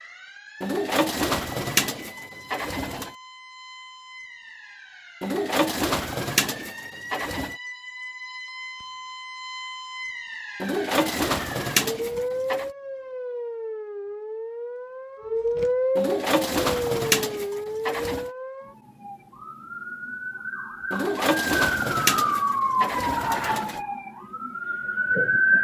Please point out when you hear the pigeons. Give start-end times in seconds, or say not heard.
0.6-3.1, 5.2-7.5, 10.6-12.7, 15.9-18.3, 20.9-23.8.